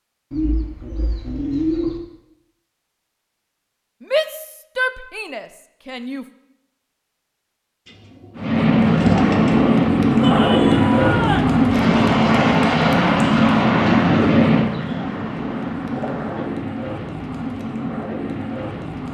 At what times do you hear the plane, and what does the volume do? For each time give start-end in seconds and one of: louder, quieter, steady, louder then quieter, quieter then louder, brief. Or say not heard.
8.3-19.1 quieter.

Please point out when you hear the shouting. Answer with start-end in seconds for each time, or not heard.
4.0-6.2, 10.2-11.6.